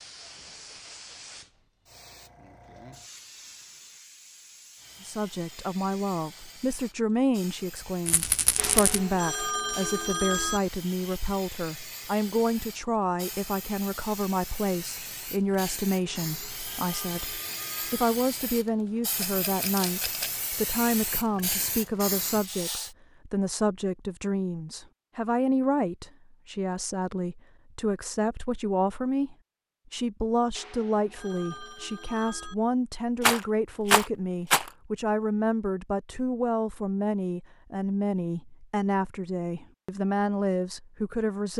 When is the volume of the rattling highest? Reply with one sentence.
The volume of the rattling peaks at 34 seconds.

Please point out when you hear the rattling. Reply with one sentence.
You can hear the rattling from 8.1 to 9.0 s, from 19.1 to 20.3 s and from 33.2 to 34.7 s.